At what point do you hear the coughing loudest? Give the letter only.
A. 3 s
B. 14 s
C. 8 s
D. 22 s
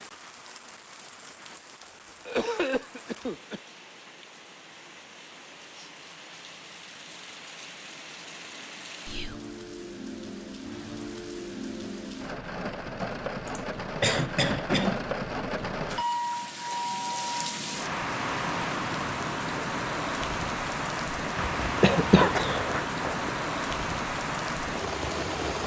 D.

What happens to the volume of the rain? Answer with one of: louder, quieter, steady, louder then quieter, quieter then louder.
louder.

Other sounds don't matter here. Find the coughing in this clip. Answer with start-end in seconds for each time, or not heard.
1.8-3.6, 13.4-15.0, 21.4-23.3.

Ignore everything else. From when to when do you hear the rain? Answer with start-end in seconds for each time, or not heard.
0.0-25.6.